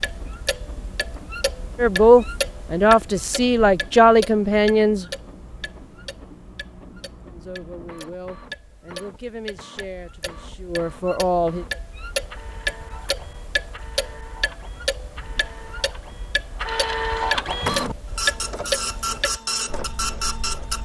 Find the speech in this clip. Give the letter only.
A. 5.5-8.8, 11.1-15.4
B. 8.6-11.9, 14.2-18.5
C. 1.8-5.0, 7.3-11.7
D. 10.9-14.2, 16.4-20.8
C.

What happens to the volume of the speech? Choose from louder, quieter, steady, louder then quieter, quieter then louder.
quieter then louder.